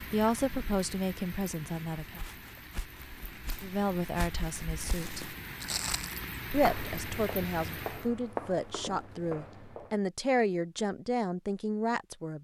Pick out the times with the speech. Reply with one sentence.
You can hear the speech from 0.1 to 2.2 s, from 3.6 to 5.2 s and from 6.5 to 12.3 s.